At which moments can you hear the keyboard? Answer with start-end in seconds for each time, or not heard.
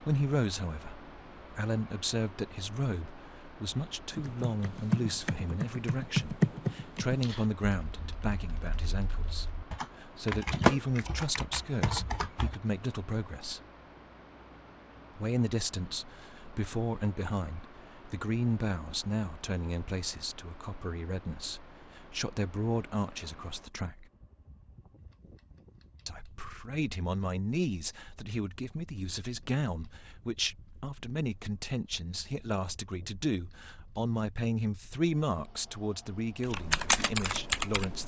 4.1-12.6, 36.4-38.0.